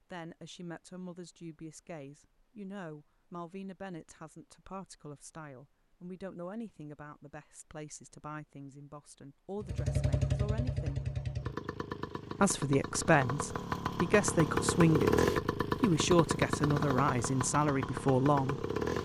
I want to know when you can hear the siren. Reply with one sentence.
You can't hear the siren here.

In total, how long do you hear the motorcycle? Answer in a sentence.
You can hear the motorcycle for 9 seconds altogether.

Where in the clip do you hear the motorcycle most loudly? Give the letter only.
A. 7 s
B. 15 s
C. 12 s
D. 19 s
B.